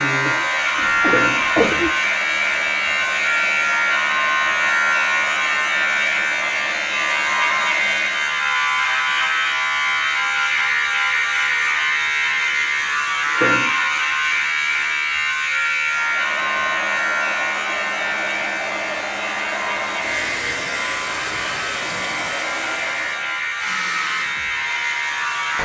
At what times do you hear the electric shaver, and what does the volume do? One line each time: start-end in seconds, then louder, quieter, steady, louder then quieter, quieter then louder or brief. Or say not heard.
0.0-25.5 quieter.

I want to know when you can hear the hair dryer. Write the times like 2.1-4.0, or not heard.
0.0-8.5, 15.8-25.5.